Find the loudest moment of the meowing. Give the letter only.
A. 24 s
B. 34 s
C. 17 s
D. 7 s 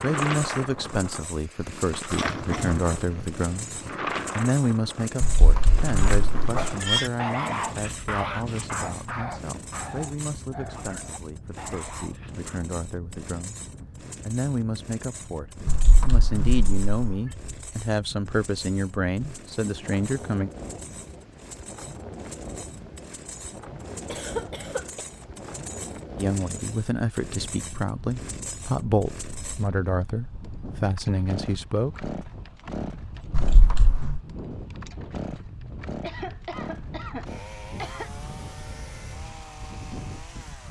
D.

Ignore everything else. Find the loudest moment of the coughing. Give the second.
24 s.